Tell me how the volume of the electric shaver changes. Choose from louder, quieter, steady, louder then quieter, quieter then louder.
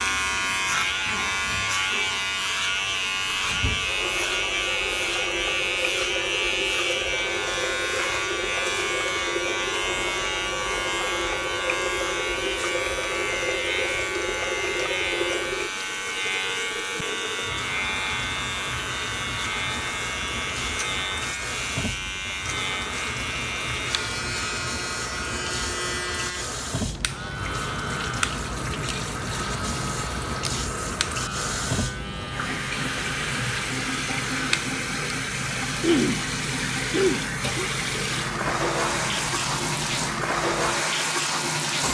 quieter.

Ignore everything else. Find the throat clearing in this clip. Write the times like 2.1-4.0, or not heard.
35.8-36.2, 36.9-37.7.